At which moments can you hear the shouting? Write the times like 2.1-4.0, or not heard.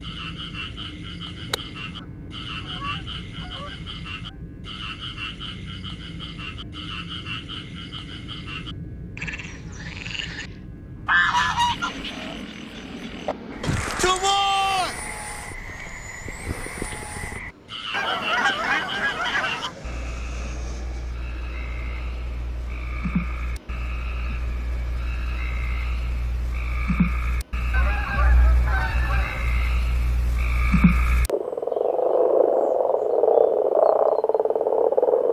13.6-15.0.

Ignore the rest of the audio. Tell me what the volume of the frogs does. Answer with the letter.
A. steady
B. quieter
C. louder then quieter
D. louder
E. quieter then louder
D.